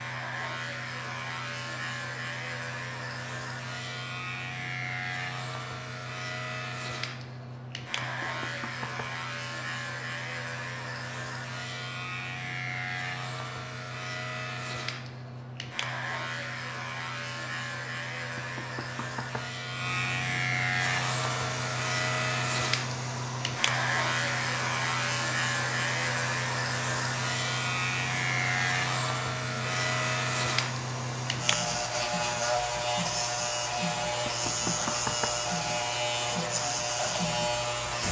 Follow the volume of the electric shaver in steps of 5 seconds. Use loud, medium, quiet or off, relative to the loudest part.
medium, medium, medium, medium, loud, loud, loud, loud.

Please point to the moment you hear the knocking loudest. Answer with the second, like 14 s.
35 s.